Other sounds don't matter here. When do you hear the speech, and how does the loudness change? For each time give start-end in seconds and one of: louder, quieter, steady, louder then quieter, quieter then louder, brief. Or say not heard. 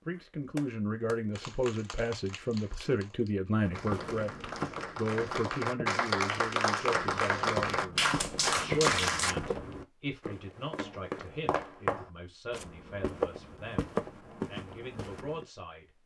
0.1-15.8 quieter.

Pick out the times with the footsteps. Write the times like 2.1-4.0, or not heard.
3.5-15.4.